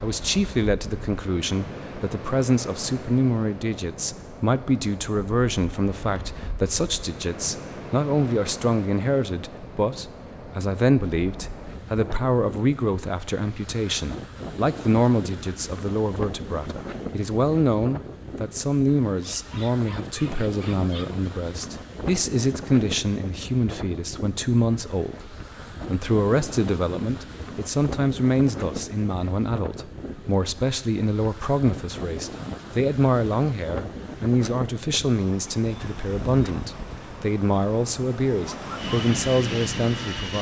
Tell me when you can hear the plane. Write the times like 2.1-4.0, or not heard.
38.8-40.3.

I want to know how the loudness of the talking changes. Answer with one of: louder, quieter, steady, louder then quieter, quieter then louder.
steady.